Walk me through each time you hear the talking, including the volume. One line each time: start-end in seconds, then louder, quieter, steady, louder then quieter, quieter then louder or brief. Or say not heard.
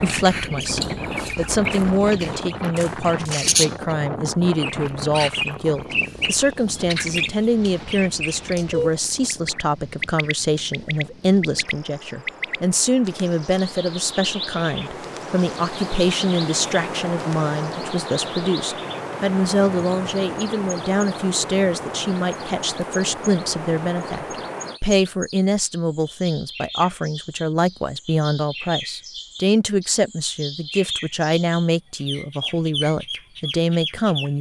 0.0-34.3 steady.